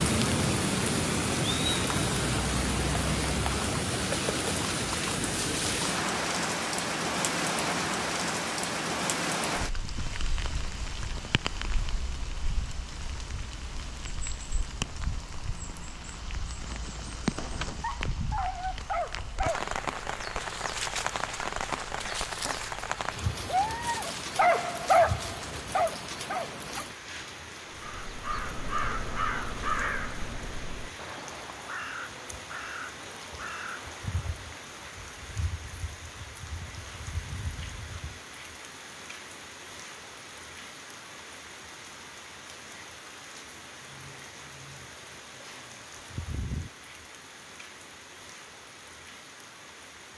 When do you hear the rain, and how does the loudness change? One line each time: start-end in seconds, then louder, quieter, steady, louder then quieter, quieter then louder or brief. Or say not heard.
0.0-50.1 quieter.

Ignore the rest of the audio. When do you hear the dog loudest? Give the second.
25 s.